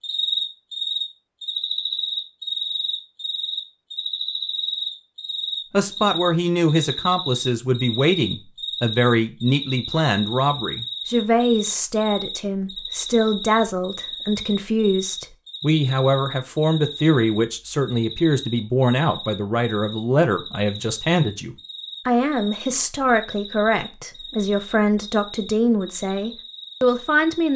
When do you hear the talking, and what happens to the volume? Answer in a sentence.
The talking can be heard from 5.7 to 27.5 s, at a steady volume.